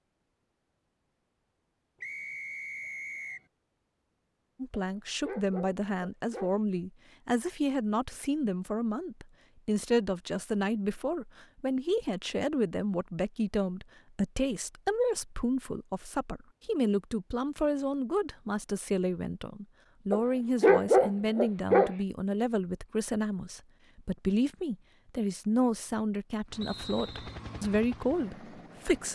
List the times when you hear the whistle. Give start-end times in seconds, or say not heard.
2.0-3.5, 26.6-27.4.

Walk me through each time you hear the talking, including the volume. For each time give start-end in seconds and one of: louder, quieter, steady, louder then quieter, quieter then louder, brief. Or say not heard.
4.6-29.0 steady.